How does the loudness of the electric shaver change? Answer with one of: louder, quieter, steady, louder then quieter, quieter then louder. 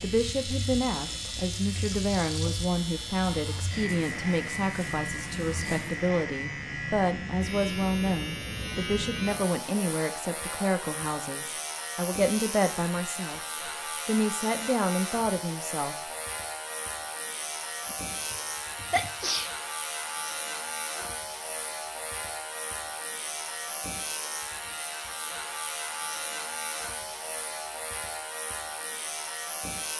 steady.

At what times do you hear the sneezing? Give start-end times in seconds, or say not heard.
17.9-19.6.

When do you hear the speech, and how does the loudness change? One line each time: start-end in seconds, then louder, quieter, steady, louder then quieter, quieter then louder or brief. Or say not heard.
0.0-13.4 steady
14.1-16.1 brief.